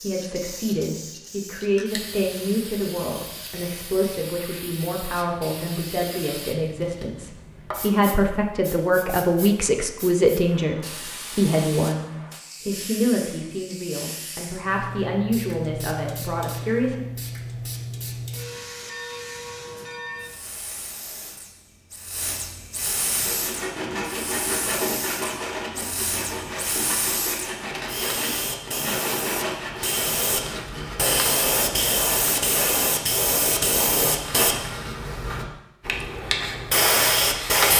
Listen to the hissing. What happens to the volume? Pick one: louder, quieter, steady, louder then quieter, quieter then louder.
louder.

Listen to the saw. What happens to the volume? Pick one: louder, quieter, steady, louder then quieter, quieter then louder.
quieter.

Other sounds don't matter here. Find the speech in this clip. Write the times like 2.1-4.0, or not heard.
0.0-17.0.